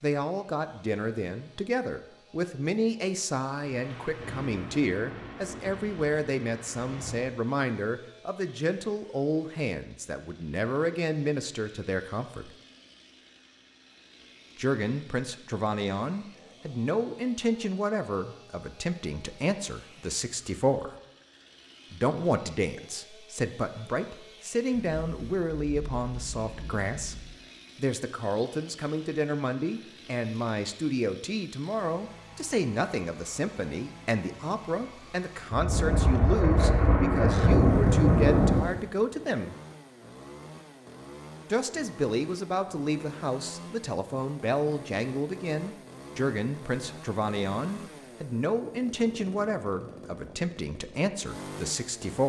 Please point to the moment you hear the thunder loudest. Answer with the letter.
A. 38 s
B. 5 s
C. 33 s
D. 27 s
A.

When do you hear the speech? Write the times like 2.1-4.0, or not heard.
0.0-12.5, 14.6-20.9, 21.9-39.5, 41.5-52.2.